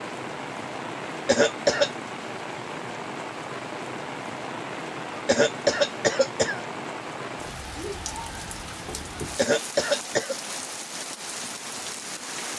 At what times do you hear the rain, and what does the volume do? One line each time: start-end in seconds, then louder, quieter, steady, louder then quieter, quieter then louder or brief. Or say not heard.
0.0-12.5 steady.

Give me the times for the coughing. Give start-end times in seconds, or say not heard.
1.2-1.9, 5.2-6.6, 9.3-10.3.